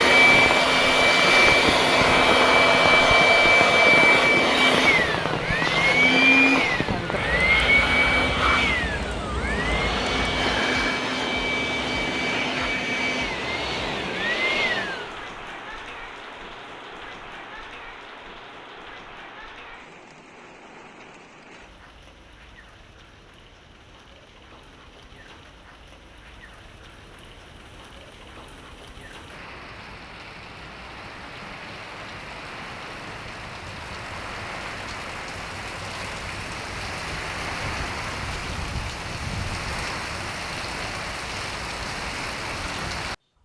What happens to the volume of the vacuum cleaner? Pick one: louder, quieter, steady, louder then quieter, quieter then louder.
quieter.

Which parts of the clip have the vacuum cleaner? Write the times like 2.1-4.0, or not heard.
0.0-15.3.